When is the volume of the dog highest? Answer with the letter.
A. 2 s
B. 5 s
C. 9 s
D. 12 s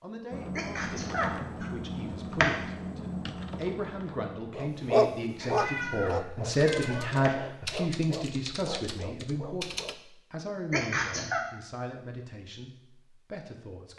B.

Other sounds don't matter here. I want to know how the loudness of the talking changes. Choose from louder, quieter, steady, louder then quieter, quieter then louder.
louder then quieter.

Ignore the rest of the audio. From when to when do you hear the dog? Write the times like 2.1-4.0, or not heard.
4.5-9.9.